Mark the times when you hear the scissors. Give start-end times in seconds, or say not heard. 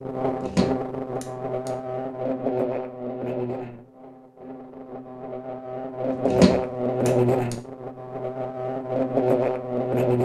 0.4-1.7, 6.2-7.5.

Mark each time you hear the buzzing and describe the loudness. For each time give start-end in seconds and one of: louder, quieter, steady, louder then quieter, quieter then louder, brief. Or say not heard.
0.0-10.2 quieter then louder.